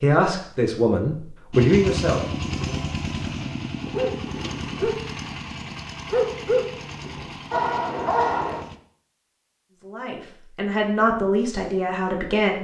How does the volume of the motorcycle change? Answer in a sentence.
The loudness of the motorcycle goes down.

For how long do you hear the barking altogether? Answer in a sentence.
You can hear the barking for 4 seconds altogether.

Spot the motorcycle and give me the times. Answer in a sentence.
You can hear the motorcycle from 1.5 to 8.8 s.